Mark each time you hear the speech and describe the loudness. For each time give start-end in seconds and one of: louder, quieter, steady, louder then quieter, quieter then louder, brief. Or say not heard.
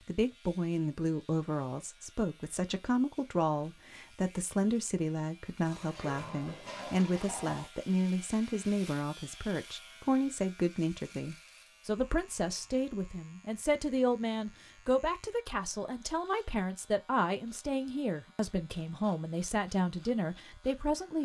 0.1-21.2 steady.